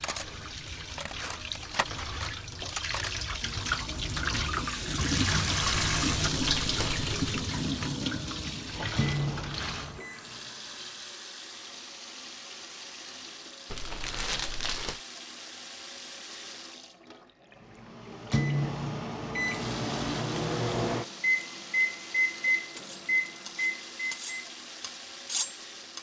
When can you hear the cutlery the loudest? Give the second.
25 s.